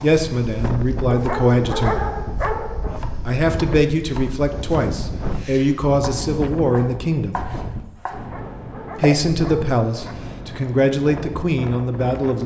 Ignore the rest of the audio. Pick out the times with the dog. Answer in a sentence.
The dog can be heard from 1.1 to 3.0 s and from 8.1 to 10.2 s.